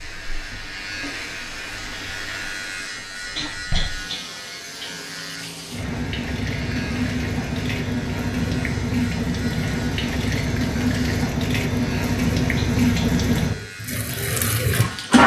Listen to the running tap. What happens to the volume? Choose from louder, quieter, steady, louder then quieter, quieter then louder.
louder.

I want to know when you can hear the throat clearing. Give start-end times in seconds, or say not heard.
3.4-4.2, 12.6-13.1.